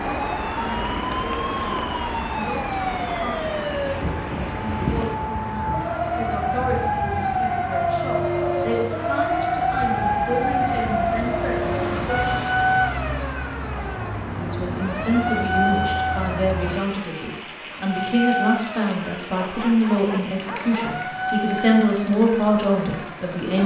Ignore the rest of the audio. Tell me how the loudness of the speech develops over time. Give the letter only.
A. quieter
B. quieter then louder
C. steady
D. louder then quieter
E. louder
E.